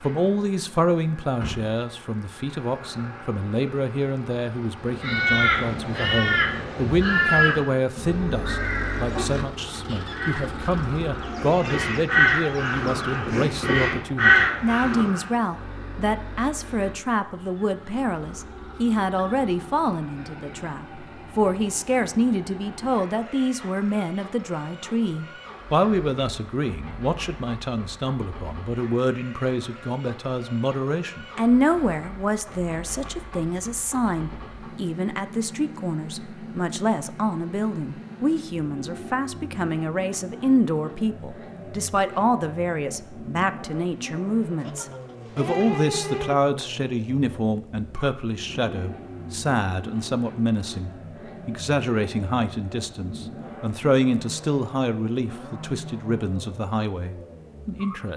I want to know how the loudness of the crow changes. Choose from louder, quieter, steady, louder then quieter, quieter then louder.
quieter then louder.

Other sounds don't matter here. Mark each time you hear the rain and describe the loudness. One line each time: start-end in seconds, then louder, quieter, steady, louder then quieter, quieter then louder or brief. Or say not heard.
not heard.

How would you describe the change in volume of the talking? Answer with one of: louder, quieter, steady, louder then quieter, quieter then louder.
steady.